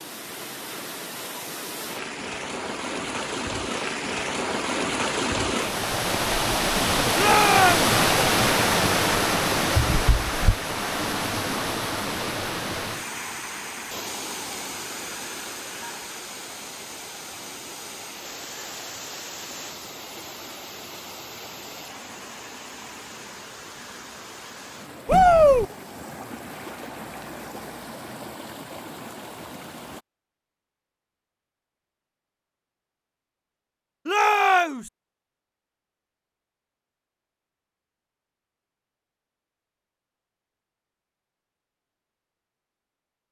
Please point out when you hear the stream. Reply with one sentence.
You can hear the stream from 0.0 to 30.0 s.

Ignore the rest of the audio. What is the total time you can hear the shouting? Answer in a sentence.
The shouting can be heard for 2 seconds in total.